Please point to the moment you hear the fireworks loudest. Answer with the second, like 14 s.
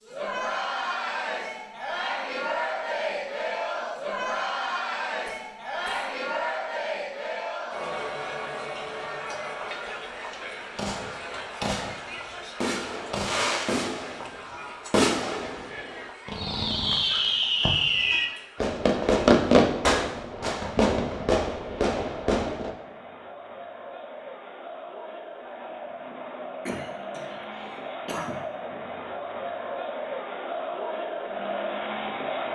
19 s.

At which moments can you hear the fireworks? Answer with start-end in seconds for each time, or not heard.
10.8-22.8.